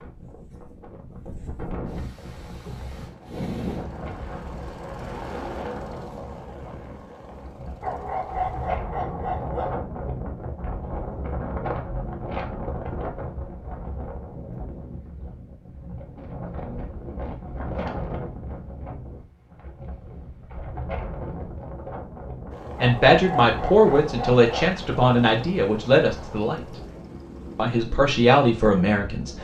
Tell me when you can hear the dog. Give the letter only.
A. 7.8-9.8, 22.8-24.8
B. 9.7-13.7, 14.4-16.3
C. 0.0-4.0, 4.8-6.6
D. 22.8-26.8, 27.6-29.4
A.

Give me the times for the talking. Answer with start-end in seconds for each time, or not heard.
22.8-26.8, 27.6-29.4.